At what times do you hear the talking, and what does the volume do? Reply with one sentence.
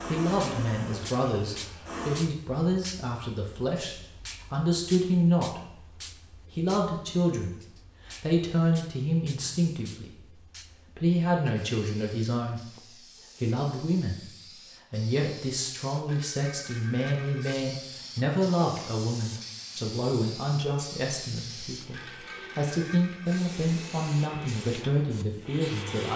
You can hear the talking from 0.1 to 26.1 s, at a steady volume.